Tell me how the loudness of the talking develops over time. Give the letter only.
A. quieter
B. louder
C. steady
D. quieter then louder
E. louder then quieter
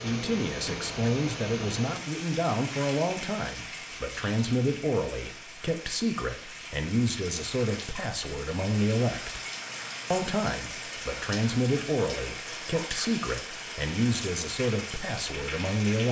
C.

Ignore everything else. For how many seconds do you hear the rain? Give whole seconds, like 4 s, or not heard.
16 s.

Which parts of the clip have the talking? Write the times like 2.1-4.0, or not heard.
0.0-9.4, 10.1-16.0.